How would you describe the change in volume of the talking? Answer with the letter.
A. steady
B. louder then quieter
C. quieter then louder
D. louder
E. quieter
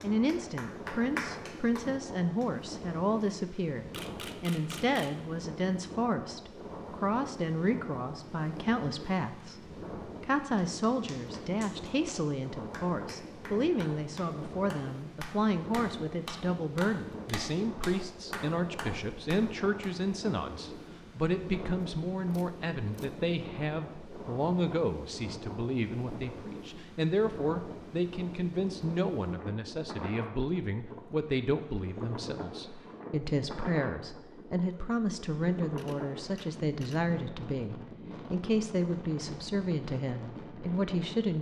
A.